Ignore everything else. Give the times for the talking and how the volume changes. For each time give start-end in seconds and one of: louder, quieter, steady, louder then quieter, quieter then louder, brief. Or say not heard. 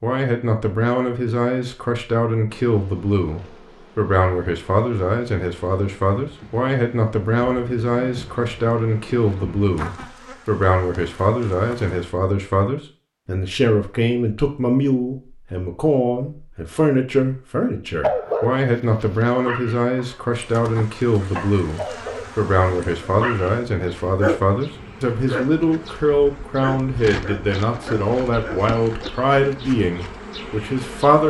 0.0-31.2 steady.